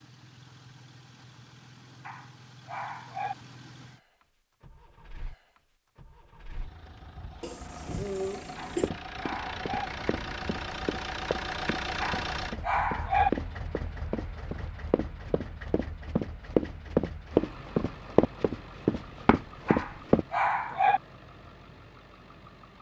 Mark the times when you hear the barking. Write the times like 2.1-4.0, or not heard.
2.0-3.4, 8.6-9.9, 12.0-13.3, 19.6-21.0.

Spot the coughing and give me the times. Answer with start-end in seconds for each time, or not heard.
7.4-8.9.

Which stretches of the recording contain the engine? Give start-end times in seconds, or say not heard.
0.0-22.7.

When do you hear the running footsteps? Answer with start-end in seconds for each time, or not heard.
8.8-20.2.